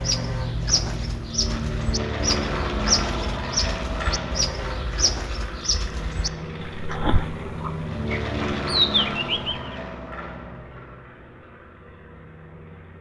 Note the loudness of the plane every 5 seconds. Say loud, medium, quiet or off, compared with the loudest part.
loud, loud, quiet.